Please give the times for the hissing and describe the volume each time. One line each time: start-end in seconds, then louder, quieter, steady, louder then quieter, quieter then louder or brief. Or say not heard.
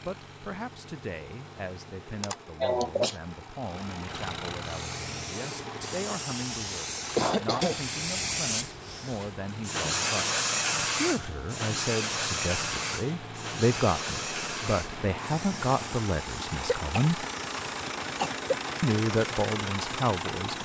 4.6-20.6 louder then quieter.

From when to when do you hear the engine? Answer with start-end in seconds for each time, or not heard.
0.0-20.6.